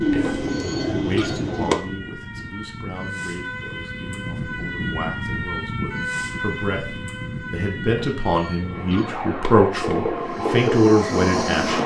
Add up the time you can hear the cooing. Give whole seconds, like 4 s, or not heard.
2 s.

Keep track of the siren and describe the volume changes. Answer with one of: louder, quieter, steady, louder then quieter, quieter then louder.
louder then quieter.